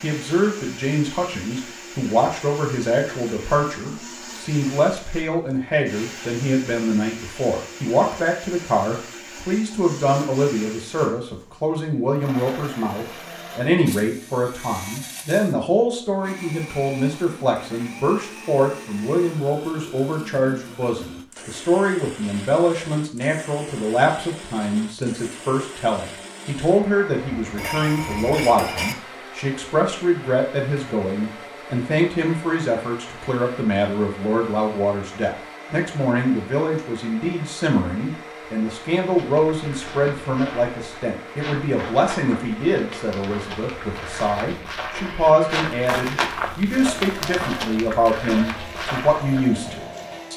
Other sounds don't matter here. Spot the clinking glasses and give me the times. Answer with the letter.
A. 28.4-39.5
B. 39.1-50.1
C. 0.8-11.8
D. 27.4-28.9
D.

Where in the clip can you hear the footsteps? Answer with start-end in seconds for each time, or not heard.
39.1-50.1.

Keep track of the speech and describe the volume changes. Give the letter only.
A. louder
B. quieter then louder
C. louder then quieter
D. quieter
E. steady
E.